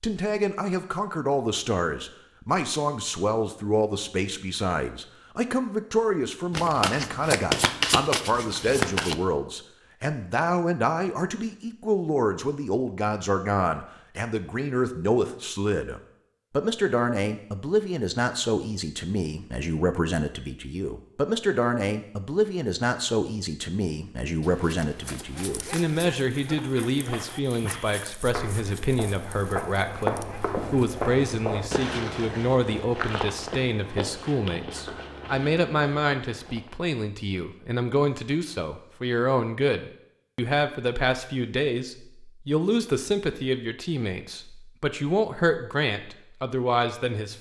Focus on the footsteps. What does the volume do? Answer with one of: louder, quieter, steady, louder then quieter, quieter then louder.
louder then quieter.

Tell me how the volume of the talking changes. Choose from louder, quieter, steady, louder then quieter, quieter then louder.
steady.